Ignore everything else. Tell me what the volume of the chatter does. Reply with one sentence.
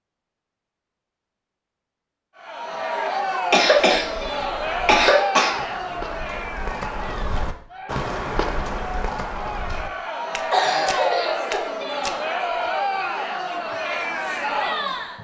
The volume of the chatter goes down, then up.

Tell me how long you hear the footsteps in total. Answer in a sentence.
You can hear the footsteps for 9 seconds altogether.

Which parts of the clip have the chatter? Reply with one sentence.
The chatter can be heard from 2.4 to 15.1 s.